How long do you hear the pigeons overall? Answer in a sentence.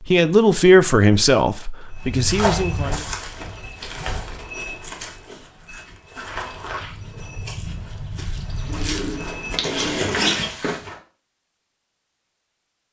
The pigeons can be heard for 2 seconds in total.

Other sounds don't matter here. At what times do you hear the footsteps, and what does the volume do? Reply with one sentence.
The footsteps can be heard from 1.9 to 10.9 s, getting quieter then louder.